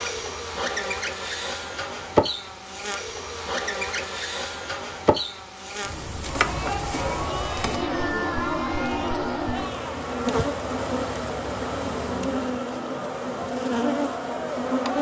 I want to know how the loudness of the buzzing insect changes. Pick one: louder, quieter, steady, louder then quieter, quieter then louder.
steady.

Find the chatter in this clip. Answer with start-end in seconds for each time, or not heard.
6.2-14.9.